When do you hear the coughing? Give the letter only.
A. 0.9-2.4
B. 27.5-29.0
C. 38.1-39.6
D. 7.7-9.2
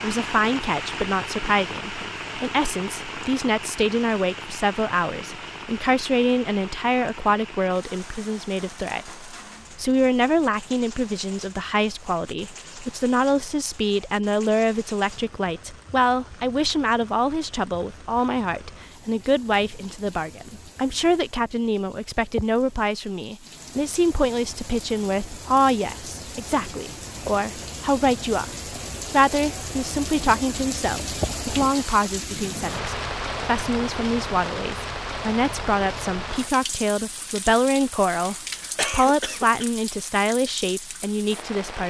C.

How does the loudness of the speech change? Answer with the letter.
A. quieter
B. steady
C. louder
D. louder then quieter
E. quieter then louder
B.